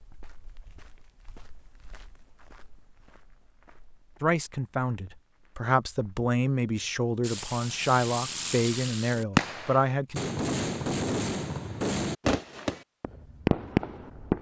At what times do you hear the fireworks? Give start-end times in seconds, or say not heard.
7.2-14.3.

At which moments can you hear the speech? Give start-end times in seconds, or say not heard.
4.2-10.2.